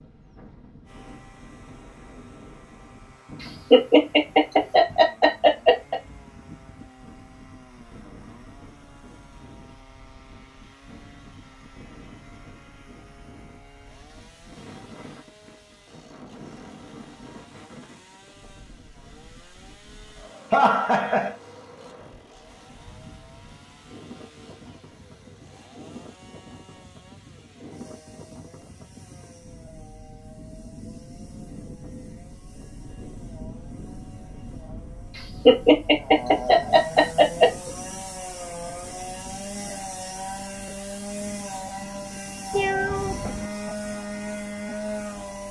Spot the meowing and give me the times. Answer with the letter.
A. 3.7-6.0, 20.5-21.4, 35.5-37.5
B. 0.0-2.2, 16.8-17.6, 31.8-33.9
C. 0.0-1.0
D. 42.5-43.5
D.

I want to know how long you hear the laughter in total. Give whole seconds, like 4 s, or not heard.
5 s.